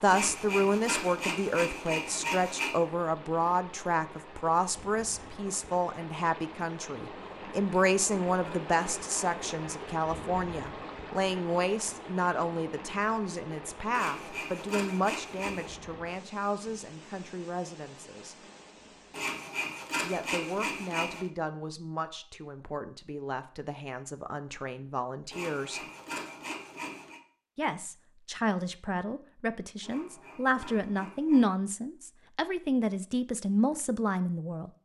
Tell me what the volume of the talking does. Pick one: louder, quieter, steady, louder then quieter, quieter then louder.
quieter then louder.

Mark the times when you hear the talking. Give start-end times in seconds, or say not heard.
0.0-18.4, 20.0-25.8, 27.6-34.7.